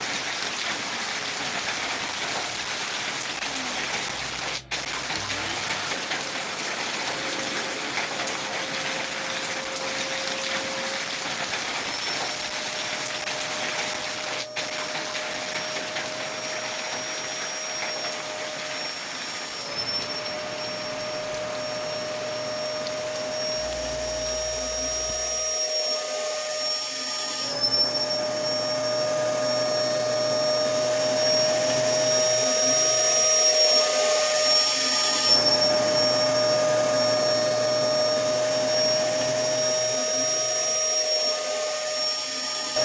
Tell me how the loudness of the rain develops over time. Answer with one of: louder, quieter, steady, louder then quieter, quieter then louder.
quieter.